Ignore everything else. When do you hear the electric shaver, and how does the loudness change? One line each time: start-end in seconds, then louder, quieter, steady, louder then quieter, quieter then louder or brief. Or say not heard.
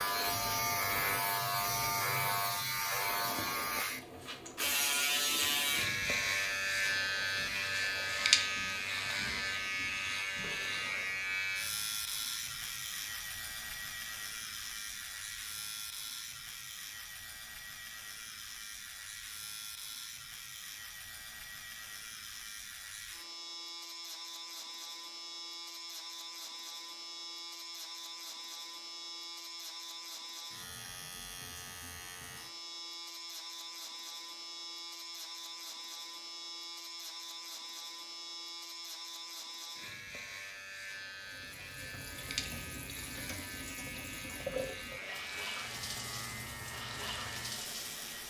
0.0-48.2 quieter.